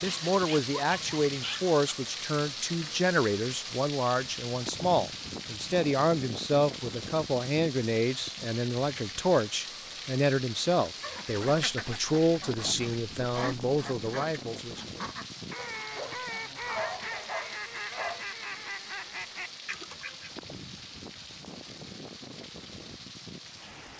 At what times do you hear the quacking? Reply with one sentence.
You can hear the quacking from 10.8 to 20.3 s.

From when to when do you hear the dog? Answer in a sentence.
The dog can be heard from 0.1 to 1.9 s and from 15.6 to 18.2 s.